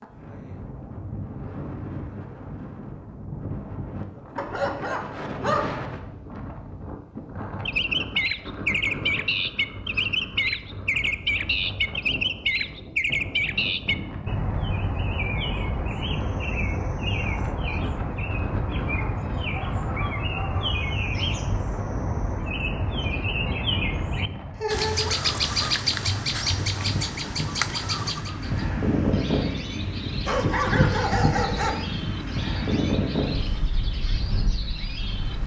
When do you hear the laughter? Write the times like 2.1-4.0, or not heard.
24.6-25.1.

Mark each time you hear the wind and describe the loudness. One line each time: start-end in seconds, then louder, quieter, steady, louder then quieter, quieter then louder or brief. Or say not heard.
0.0-35.4 louder.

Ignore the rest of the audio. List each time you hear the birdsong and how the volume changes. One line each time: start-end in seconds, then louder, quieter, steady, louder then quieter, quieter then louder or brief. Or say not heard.
7.7-35.4 quieter.